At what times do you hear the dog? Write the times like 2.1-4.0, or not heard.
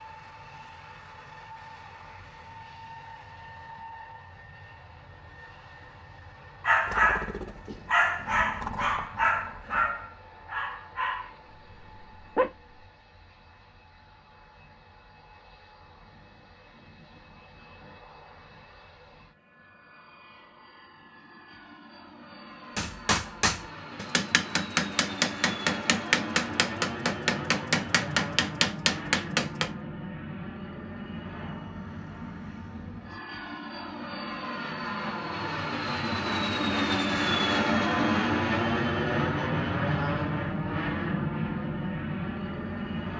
6.6-12.8.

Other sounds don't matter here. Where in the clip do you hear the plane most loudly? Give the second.
38 s.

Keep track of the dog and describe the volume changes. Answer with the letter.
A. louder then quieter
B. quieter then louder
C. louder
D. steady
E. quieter
E.